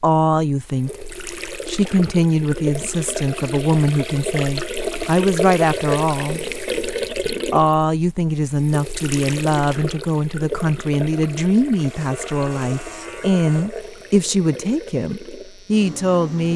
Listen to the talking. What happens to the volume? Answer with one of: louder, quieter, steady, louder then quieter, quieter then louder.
steady.